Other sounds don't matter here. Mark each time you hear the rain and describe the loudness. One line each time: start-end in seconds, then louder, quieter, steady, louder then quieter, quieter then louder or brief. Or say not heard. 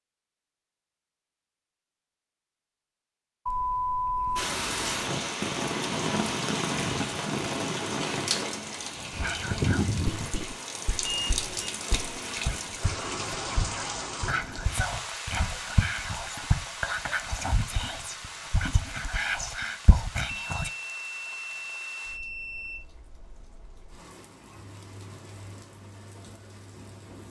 4.3-27.2 quieter.